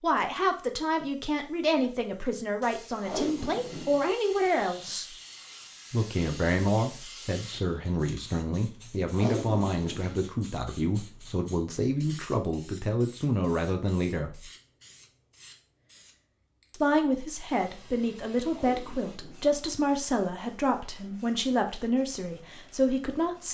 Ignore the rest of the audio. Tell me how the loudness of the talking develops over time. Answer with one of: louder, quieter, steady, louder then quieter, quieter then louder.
steady.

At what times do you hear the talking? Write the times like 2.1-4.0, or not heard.
0.0-5.2, 5.9-14.5, 16.7-23.4.